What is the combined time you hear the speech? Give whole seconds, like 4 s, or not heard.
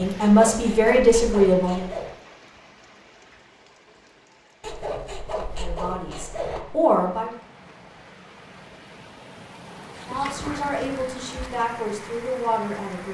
7 s.